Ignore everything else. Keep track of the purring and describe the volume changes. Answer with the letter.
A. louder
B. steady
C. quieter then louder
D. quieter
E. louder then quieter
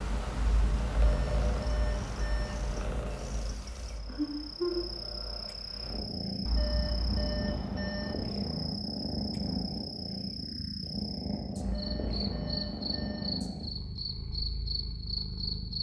B.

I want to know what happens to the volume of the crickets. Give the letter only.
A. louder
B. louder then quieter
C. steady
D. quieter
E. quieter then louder
A.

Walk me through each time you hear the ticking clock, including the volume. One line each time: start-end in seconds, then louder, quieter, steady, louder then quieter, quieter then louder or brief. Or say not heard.
not heard.